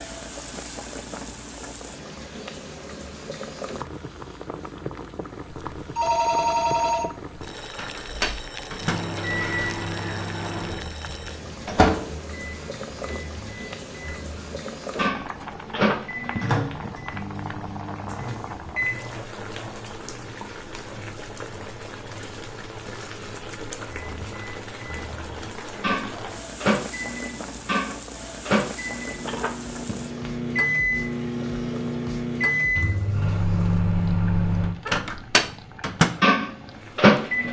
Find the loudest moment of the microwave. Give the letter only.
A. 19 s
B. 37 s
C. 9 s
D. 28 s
B.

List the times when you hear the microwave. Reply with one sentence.
The microwave can be heard from 7.5 to 19.1 s and from 23.8 to 37.4 s.